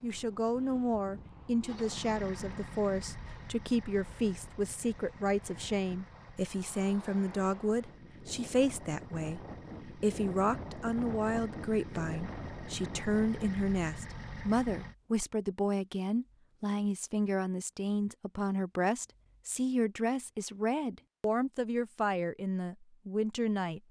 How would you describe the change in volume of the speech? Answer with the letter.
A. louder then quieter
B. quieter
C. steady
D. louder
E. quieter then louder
C.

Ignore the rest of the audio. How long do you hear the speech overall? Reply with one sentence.
The speech can be heard for 24 seconds in total.